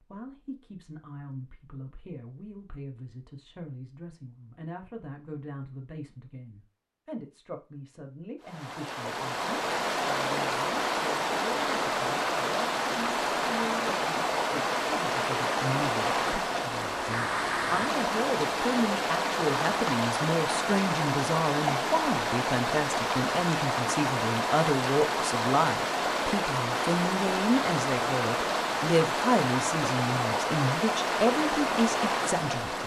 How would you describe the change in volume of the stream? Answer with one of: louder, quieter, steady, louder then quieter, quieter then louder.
steady.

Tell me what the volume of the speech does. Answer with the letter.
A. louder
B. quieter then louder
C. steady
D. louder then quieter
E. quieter
A.